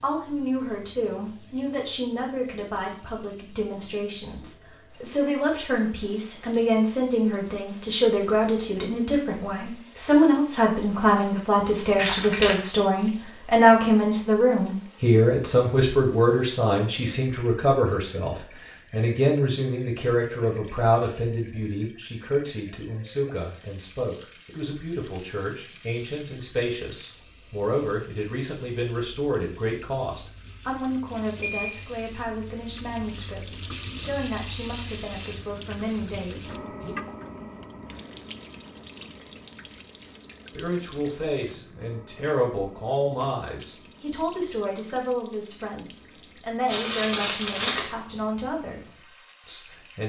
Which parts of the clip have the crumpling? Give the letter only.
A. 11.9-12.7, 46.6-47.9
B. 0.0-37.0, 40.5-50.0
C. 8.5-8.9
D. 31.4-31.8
A.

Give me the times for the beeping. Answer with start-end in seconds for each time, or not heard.
31.4-31.8.